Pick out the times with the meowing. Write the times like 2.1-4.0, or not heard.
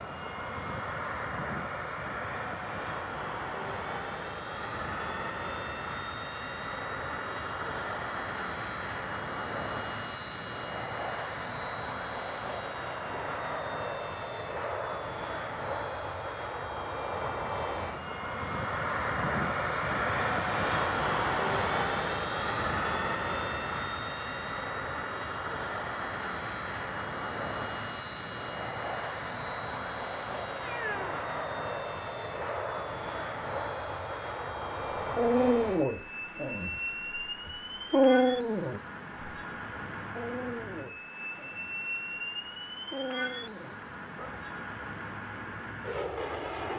30.6-31.2.